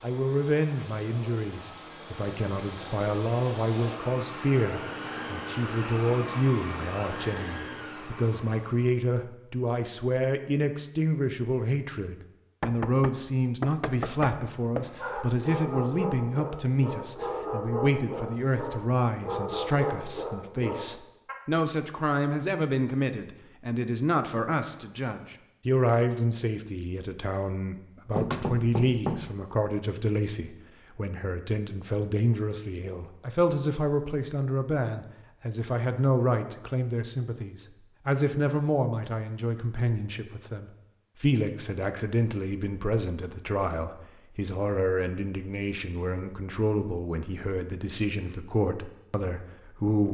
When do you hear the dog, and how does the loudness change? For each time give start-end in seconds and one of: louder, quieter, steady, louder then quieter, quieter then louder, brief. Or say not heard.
14.8-21.4 steady.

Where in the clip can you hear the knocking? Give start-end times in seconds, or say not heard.
12.6-14.9, 28.1-29.4.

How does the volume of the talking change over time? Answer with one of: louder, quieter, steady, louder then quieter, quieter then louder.
steady.